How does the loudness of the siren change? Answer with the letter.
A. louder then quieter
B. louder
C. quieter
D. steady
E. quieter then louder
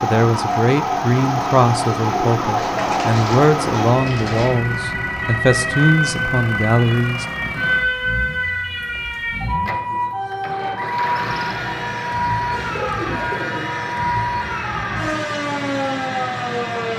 D.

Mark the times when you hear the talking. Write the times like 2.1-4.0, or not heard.
0.0-7.2.